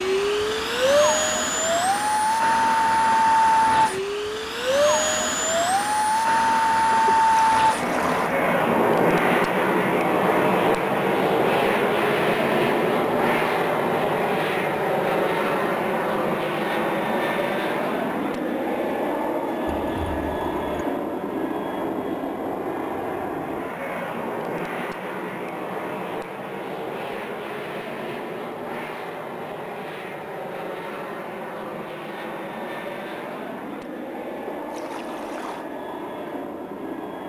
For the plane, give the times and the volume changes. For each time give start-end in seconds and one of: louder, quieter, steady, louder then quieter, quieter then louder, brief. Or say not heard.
0.0-37.2 quieter.